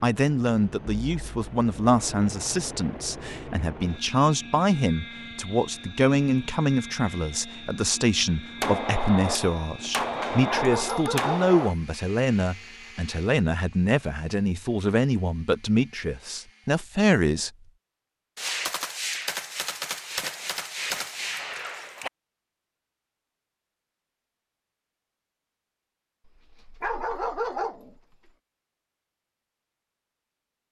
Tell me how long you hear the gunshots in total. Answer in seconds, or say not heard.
7 s.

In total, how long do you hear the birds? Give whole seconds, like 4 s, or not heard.
not heard.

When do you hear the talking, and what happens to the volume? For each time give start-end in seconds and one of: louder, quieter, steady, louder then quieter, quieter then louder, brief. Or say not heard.
0.0-17.5 steady.